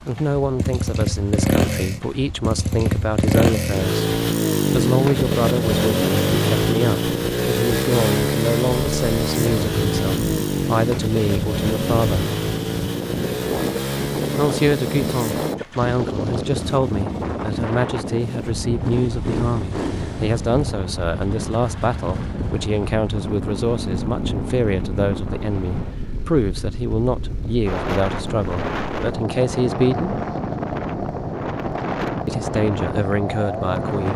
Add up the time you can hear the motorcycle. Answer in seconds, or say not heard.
34 s.